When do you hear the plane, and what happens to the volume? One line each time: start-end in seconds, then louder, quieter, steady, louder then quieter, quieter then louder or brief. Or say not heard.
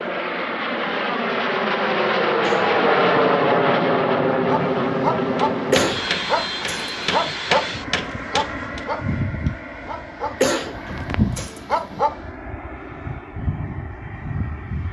0.0-14.8 quieter.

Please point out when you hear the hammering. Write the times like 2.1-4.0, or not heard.
5.5-8.8.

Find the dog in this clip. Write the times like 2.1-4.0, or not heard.
4.5-12.2.